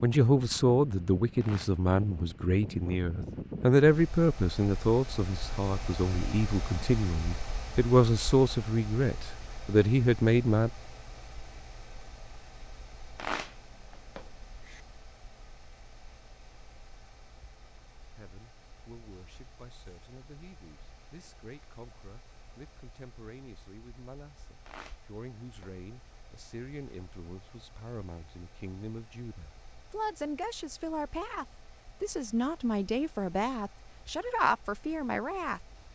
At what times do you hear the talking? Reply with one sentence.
The talking can be heard from 0.0 to 10.7 s and from 18.0 to 35.6 s.